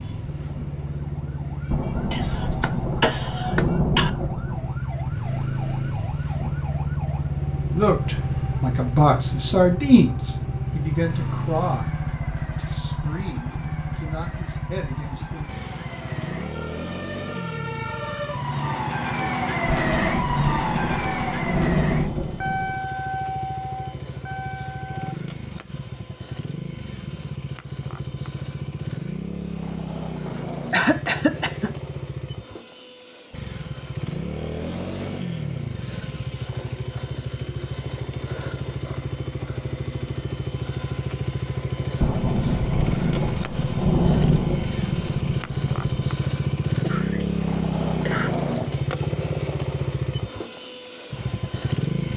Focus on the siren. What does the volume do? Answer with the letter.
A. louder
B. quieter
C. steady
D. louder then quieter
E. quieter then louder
A.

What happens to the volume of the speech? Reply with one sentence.
The volume of the speech goes down.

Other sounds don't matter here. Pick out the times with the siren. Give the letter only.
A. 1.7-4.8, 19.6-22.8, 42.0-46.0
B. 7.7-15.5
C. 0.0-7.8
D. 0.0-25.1
D.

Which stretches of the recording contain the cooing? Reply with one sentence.
The cooing can't be heard in this clip.